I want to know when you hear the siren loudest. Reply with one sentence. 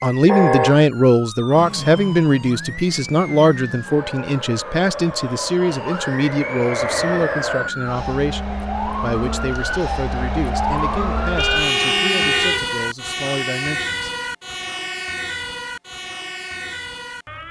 The volume of the siren peaks at 12 seconds.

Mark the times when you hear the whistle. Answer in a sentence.
The whistle can't be heard in this clip.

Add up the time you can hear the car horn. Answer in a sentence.
You can hear the car horn for 2 seconds altogether.